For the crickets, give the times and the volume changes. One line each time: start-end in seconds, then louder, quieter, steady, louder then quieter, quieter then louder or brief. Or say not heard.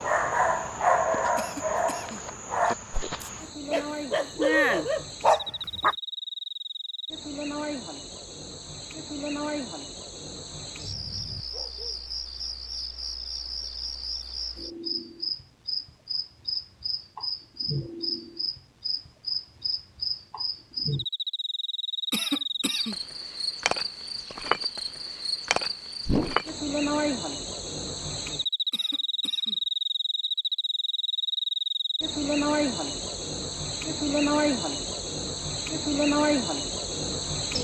0.0-37.6 louder.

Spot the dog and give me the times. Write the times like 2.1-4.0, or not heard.
0.0-6.0.